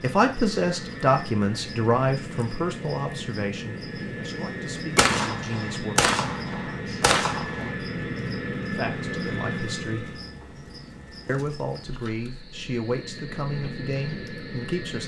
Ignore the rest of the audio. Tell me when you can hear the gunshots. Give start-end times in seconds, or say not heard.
5.0-7.8.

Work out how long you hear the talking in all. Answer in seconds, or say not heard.
11 s.